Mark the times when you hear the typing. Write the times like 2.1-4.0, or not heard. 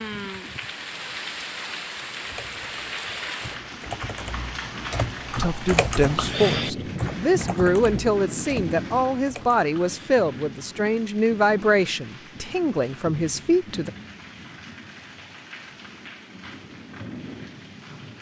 2.1-10.1.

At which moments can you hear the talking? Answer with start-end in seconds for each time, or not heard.
5.3-13.9.